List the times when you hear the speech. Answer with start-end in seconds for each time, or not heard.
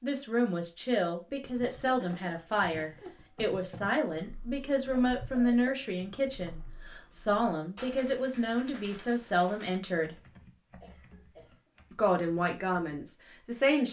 0.0-10.2, 11.9-13.8.